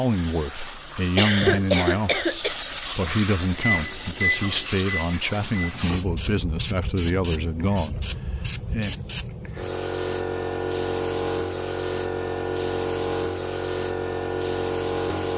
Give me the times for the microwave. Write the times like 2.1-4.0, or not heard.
3.5-6.0.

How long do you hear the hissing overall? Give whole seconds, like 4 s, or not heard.
15 s.